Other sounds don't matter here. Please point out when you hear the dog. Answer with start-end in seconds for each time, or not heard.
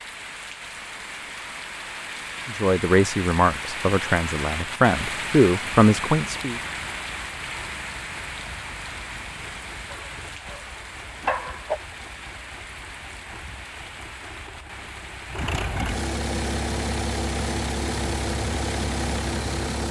9.9-11.8.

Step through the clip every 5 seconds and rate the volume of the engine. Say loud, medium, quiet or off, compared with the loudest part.
off, quiet, quiet, loud.